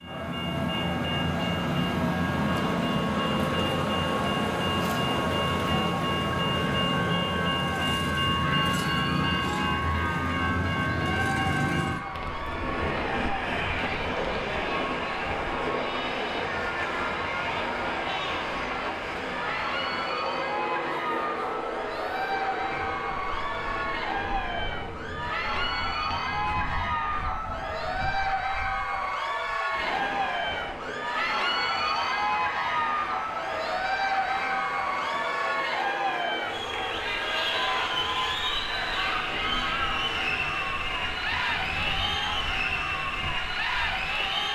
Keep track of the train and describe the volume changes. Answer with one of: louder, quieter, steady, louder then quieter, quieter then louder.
quieter.